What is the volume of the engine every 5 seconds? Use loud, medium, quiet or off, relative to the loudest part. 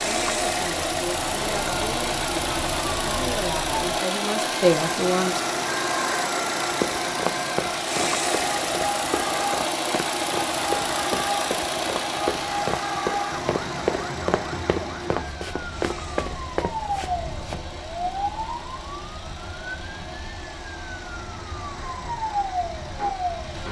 loud, loud, loud, quiet, quiet.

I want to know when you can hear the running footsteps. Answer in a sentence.
You can hear the running footsteps from 6.7 to 17.6 s.